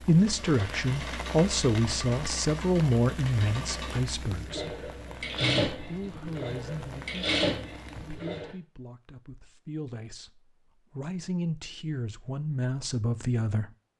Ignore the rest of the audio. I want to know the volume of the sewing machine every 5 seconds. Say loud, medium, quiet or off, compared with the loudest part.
medium, loud, off.